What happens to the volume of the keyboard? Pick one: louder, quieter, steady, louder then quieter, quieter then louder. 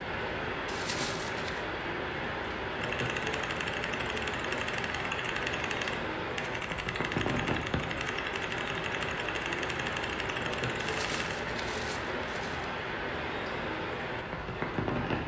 steady.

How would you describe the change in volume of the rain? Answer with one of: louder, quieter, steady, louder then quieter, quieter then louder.
steady.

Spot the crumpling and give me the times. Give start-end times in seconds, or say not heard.
0.7-1.6, 10.8-12.7.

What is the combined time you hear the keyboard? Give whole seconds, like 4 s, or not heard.
8 s.